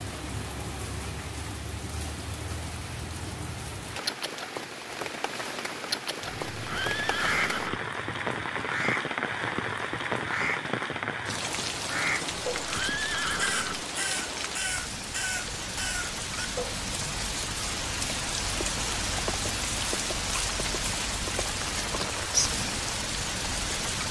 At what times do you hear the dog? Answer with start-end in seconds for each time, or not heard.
not heard.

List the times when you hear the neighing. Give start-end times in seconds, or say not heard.
6.2-7.8, 12.5-13.8.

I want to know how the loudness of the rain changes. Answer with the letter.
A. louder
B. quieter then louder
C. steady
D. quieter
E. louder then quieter
A.